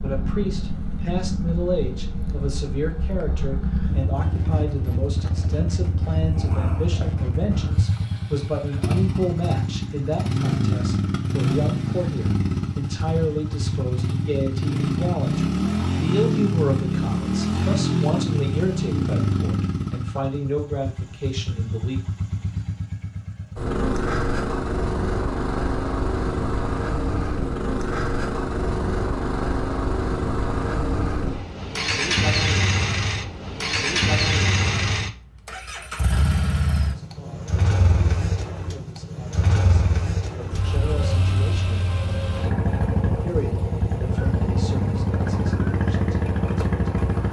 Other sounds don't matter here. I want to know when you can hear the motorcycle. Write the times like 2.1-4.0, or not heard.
0.0-47.2.